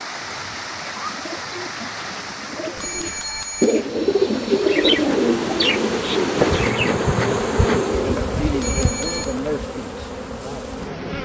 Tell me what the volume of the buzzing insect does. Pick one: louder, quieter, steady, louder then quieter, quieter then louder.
louder then quieter.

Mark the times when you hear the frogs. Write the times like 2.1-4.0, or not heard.
not heard.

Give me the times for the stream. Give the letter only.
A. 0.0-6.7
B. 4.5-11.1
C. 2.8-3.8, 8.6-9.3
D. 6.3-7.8
A.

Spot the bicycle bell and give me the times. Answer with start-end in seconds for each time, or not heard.
2.8-3.8, 8.6-9.3.